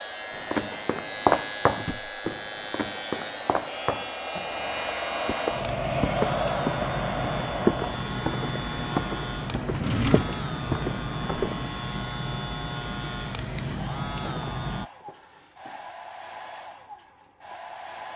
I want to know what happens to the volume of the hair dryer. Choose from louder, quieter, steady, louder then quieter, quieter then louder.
louder then quieter.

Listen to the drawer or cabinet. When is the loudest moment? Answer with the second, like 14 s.
10 s.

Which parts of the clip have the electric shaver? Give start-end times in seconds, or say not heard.
0.0-14.9.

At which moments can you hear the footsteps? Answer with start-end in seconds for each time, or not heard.
0.3-11.7.